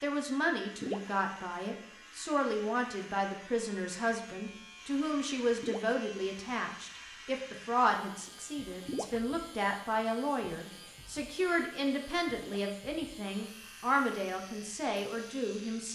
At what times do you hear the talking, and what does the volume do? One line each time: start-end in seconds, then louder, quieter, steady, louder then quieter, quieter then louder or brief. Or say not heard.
0.0-15.9 steady.